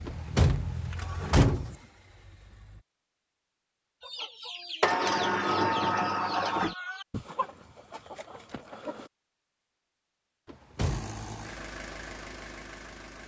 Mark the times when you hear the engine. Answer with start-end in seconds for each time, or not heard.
0.0-2.9, 10.8-13.2.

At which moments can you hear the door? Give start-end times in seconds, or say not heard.
0.1-1.8, 4.8-6.8, 10.4-11.2.